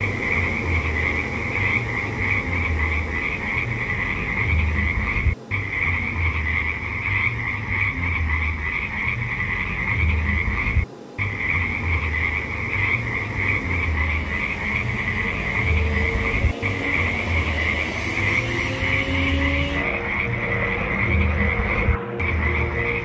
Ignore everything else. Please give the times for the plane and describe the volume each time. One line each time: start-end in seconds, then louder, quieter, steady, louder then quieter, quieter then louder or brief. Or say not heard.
0.0-23.0 quieter then louder.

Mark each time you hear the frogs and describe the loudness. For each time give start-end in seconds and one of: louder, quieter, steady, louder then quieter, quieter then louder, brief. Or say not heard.
0.0-23.0 steady.